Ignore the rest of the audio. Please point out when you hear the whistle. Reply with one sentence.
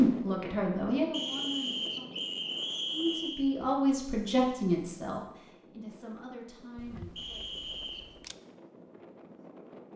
You can hear the whistle from 1.1 to 3.5 s and from 7.2 to 8.1 s.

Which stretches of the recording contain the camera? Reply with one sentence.
You can hear the camera from 6.8 to 8.3 s.